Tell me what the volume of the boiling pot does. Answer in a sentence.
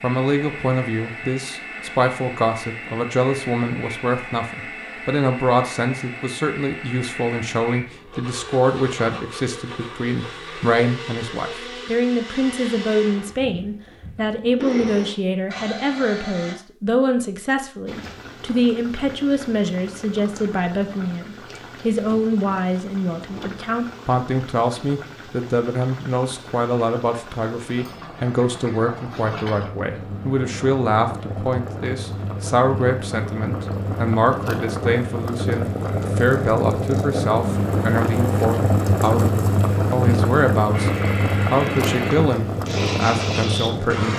The volume of the boiling pot goes up.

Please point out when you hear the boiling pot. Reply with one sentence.
You can hear the boiling pot from 17.9 to 44.1 s.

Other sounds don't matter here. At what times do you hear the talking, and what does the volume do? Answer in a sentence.
You can hear the talking from 0.0 to 44.1 s, at a steady volume.